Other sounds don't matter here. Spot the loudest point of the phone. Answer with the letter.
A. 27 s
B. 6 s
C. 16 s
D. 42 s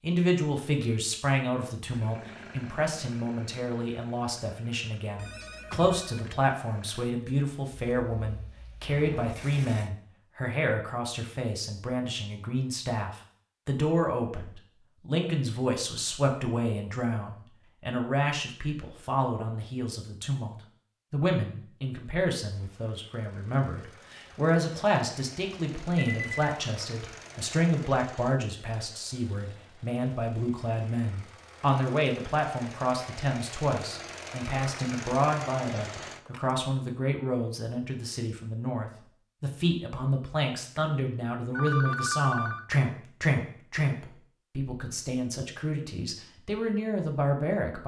D.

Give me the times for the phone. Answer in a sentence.
You can hear the phone from 5.2 to 6.5 s, from 25.9 to 26.4 s and from 41.5 to 42.6 s.